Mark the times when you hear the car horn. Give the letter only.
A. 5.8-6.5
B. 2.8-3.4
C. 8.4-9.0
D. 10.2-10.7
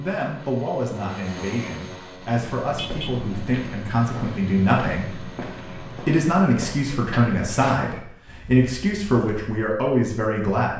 B.